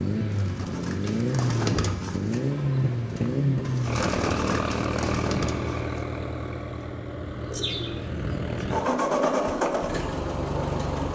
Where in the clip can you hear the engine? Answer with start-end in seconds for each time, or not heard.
0.0-11.0.